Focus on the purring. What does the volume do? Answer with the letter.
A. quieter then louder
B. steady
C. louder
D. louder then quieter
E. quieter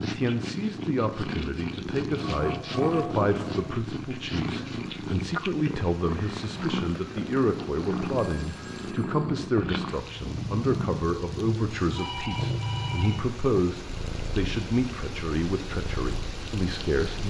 E.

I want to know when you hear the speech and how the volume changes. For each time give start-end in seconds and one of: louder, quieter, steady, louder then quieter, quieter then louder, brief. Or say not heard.
0.0-17.2 steady.